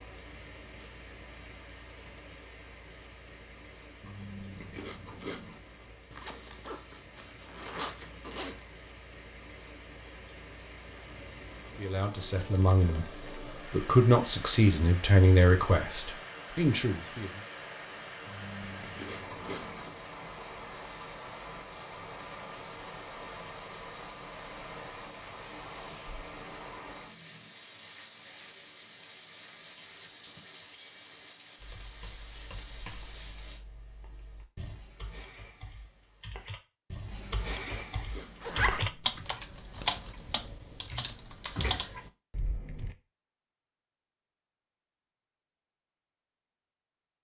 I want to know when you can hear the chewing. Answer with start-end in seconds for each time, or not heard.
4.0-5.6, 18.2-19.9, 36.9-39.1.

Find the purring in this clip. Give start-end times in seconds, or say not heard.
not heard.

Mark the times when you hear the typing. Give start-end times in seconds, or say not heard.
31.6-43.0.